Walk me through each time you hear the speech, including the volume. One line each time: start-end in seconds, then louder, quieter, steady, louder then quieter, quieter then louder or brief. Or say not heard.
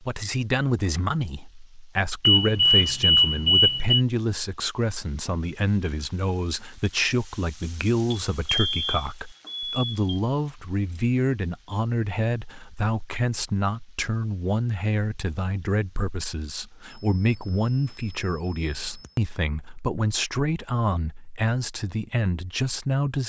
0.0-23.2 steady.